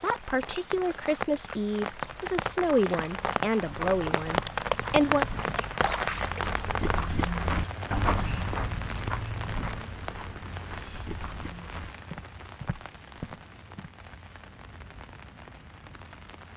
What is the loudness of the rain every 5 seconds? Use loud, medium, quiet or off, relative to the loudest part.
loud, loud, quiet, quiet.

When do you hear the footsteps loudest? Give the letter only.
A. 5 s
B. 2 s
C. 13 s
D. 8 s
D.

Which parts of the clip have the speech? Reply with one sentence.
You can hear the speech from 0.0 to 5.2 s.